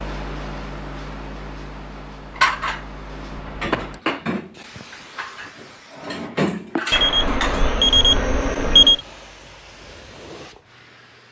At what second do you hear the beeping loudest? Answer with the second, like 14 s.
9 s.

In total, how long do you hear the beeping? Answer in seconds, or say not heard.
2 s.